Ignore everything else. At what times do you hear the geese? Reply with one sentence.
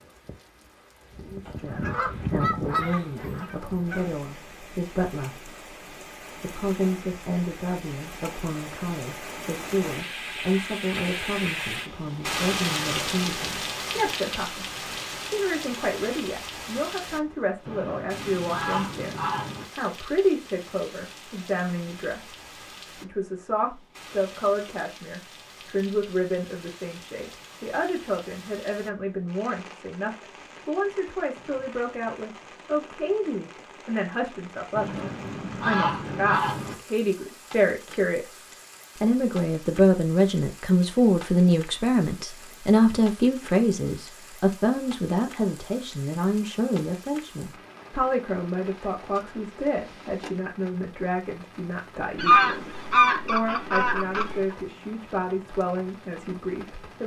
The geese can be heard from 1.4 to 4.1 s, from 17.6 to 19.6 s, from 34.8 to 36.8 s and from 52.1 to 54.5 s.